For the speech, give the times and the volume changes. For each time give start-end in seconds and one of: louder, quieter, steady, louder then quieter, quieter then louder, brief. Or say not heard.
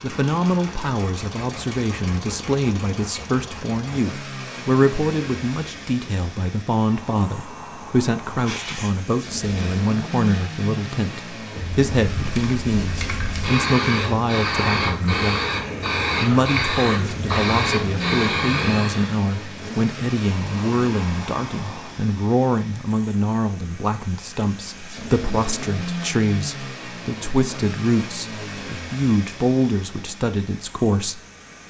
0.0-15.4 steady
16.2-31.2 steady.